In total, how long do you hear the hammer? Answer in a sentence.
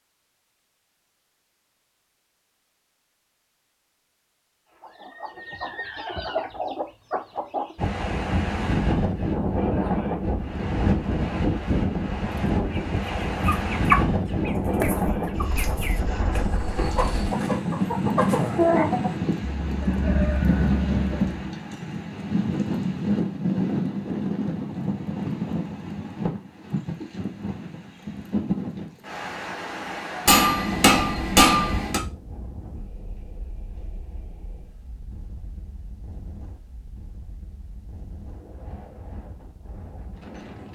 You can hear the hammer for 2 seconds altogether.